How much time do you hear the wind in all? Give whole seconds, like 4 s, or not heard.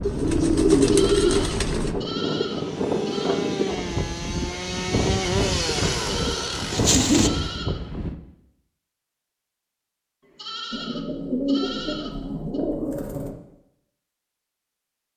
8 s.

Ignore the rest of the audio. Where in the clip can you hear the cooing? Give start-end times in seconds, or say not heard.
0.0-1.9, 5.7-7.3, 10.7-13.3.